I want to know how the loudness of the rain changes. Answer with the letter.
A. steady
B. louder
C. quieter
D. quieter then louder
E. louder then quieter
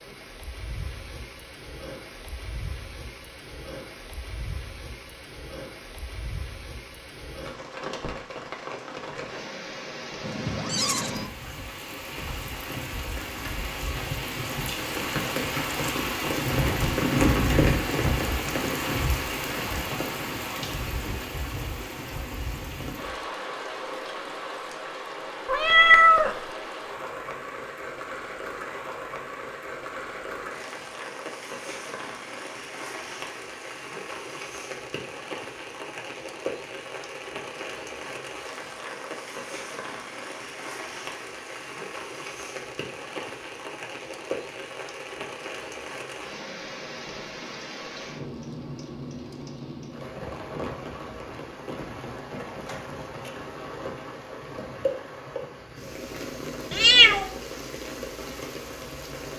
E.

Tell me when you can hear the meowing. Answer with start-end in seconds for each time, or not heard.
10.2-11.2, 25.4-26.4, 56.7-57.2.